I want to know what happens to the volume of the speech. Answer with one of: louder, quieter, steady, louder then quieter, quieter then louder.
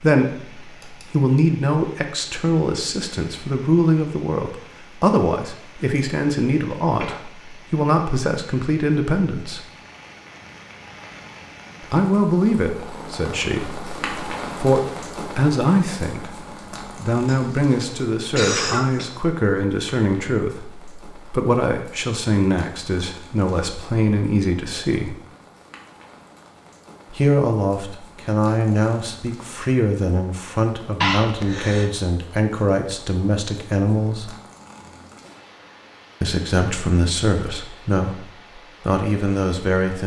steady.